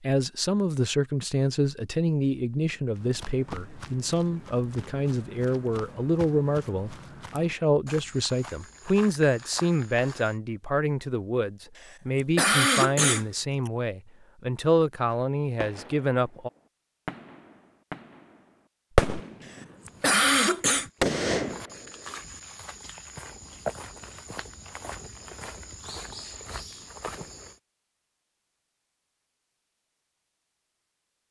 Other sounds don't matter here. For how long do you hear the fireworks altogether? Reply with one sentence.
The fireworks can be heard for 5 seconds in total.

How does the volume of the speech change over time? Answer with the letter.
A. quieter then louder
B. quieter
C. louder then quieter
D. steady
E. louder
D.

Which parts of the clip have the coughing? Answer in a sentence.
The coughing can be heard from 12.2 to 13.7 s and from 19.9 to 20.9 s.